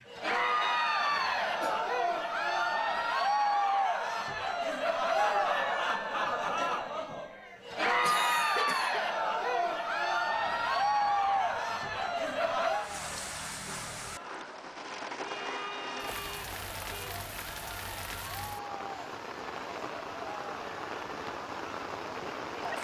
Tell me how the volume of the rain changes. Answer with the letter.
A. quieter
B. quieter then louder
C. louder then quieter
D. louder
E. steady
D.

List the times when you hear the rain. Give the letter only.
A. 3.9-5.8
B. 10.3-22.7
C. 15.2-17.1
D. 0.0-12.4
B.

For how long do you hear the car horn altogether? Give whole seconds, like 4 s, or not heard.
2 s.